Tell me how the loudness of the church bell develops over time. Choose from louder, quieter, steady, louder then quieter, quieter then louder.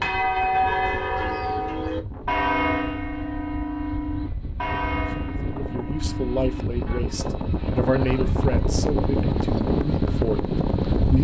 quieter.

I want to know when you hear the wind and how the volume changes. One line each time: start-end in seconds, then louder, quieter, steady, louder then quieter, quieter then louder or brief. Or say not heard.
0.0-11.1 louder.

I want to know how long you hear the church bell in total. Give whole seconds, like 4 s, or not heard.
7 s.